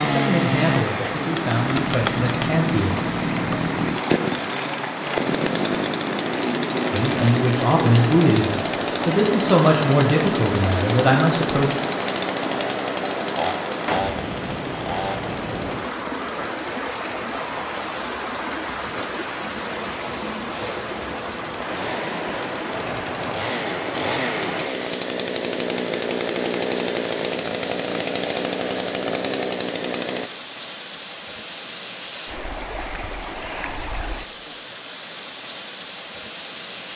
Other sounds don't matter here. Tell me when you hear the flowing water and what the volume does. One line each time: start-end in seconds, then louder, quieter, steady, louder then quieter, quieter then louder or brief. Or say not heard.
0.0-36.9 steady.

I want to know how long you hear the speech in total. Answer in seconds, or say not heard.
8 s.